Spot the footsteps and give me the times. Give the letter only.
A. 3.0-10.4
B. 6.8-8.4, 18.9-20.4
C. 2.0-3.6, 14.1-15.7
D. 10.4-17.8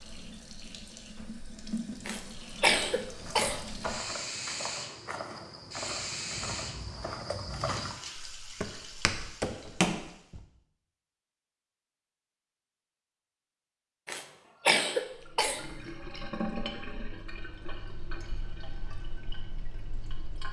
A.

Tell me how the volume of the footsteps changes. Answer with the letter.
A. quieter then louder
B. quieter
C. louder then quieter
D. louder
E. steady
D.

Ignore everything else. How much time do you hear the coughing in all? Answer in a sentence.
The coughing can be heard for 3 seconds in total.